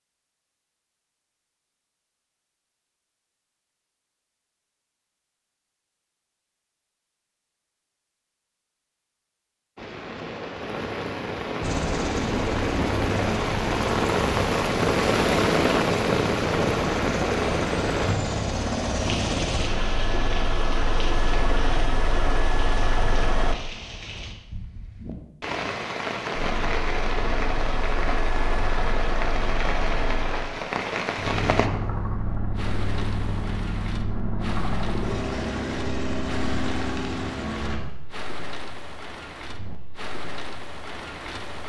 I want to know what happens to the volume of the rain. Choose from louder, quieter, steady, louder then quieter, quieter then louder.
quieter.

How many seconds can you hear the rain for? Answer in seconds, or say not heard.
32 s.